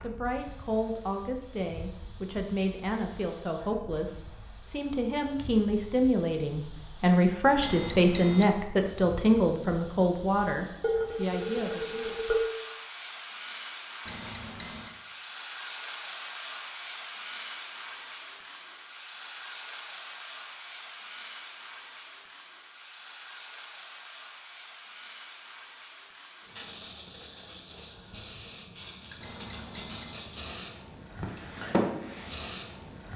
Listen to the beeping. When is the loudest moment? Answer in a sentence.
The volume of the beeping peaks at 8 seconds.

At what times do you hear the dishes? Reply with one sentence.
You can hear the dishes from 10.8 to 12.4 s.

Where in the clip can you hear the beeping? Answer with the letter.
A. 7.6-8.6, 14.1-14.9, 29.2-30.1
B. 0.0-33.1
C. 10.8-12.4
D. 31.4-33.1
A.